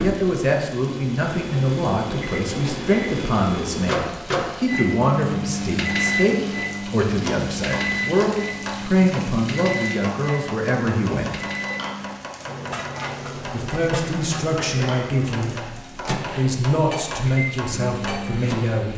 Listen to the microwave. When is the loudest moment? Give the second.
6 s.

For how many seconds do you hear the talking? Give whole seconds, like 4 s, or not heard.
17 s.